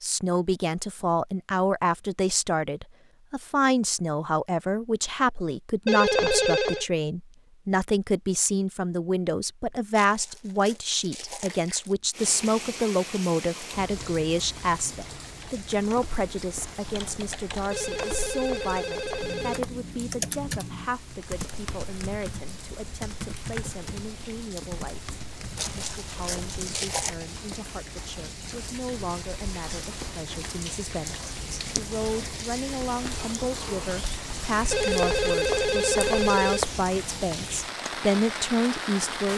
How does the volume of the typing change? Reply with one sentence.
The volume of the typing goes up, then down.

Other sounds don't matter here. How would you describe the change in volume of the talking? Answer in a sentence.
The loudness of the talking goes down, then up.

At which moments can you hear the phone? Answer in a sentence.
You can hear the phone from 5.8 to 6.8 s, from 17.7 to 19.7 s and from 34.7 to 36.7 s.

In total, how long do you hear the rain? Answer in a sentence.
You can hear the rain for 27 seconds altogether.